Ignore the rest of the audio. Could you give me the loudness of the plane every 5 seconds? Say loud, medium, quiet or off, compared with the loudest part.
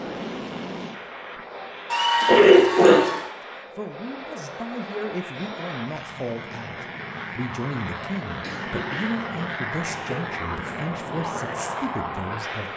medium, loud, loud.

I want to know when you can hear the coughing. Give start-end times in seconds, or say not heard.
1.9-3.2, 8.4-9.1, 9.8-10.2.